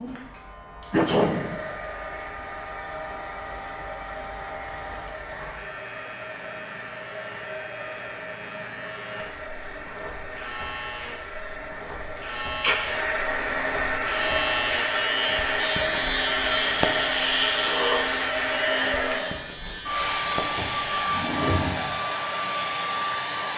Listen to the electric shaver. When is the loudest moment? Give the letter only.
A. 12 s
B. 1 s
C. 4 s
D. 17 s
D.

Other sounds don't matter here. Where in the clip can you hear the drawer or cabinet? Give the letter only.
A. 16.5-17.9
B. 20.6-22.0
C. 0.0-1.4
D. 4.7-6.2
B.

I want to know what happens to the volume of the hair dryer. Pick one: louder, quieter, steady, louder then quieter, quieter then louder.
louder.